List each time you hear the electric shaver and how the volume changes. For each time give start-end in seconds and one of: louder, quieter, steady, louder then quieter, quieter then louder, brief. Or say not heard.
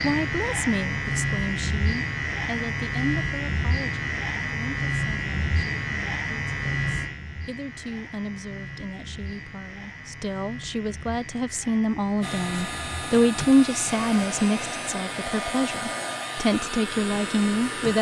0.0-17.8 quieter.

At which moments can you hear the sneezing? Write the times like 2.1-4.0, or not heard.
not heard.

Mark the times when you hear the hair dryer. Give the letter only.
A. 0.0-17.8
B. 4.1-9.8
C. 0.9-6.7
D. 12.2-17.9
D.